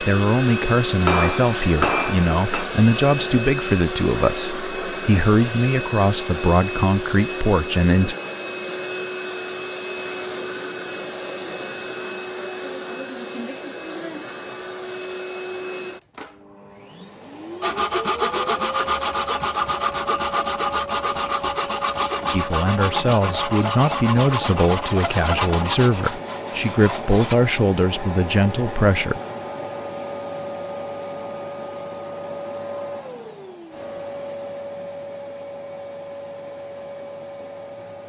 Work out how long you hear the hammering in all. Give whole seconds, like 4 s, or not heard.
2 s.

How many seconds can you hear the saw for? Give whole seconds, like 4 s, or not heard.
10 s.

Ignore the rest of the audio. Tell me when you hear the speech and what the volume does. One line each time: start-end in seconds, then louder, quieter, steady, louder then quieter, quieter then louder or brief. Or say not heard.
0.0-8.2 steady
22.3-29.2 steady.